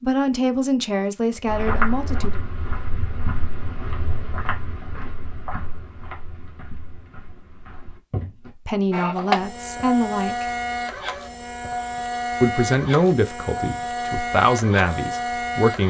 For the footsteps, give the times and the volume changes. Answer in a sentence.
The footsteps can be heard from 1.4 to 8.5 s, getting quieter.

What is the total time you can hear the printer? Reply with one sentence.
The printer can be heard for 7 seconds in total.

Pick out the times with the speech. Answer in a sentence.
You can hear the speech from 0.0 to 2.4 s, from 8.7 to 10.4 s and from 12.4 to 15.8 s.